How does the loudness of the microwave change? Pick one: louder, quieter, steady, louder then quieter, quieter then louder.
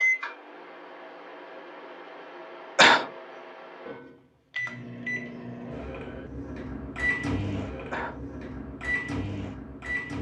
louder.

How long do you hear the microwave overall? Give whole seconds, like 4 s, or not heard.
10 s.